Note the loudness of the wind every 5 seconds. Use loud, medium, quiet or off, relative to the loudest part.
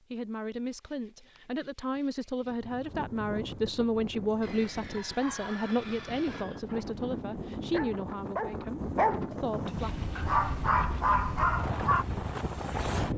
medium, medium, loud.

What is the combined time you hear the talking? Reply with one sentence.
The talking can be heard for 10 seconds in total.